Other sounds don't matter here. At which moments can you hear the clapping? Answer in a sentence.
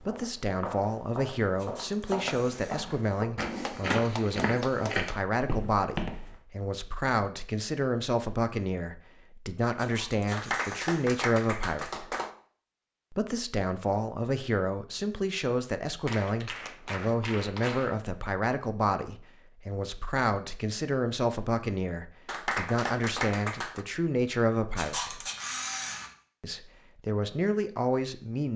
The clapping can be heard from 3.4 to 5.2 s, from 10.3 to 12.3 s, from 16.1 to 17.9 s and from 22.2 to 23.9 s.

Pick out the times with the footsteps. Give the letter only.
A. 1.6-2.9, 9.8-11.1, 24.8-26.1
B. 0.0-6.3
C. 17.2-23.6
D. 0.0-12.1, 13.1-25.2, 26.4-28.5
B.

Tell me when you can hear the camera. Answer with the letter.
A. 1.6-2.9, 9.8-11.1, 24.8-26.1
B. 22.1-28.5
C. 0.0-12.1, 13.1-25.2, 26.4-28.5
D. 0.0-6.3
A.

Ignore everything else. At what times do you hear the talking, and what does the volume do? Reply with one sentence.
The talking can be heard from 0.0 to 12.1 s, at a steady volume; from 13.1 to 25.2 s, at a steady volume; and briefly from 26.4 to 28.5 s.